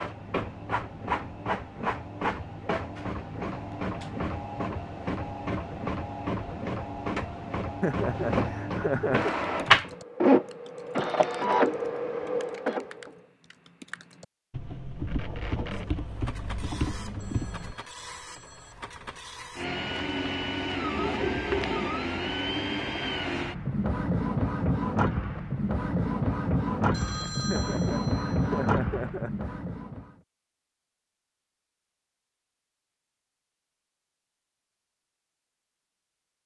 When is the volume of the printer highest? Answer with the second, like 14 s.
10 s.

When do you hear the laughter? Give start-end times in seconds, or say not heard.
7.8-9.3, 27.4-29.5.